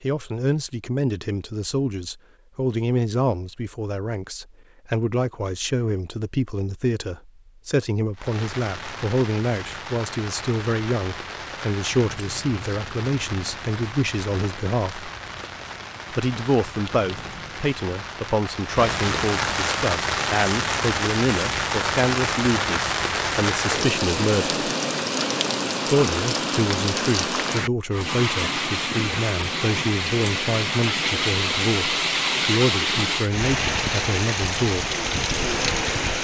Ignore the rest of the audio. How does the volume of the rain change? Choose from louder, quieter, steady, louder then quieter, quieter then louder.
louder.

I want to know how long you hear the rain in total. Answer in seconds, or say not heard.
28 s.